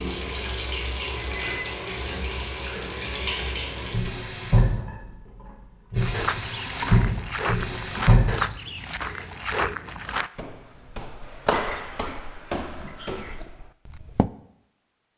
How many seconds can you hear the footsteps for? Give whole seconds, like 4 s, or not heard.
8 s.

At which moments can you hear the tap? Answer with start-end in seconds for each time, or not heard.
0.0-5.0, 5.9-8.4.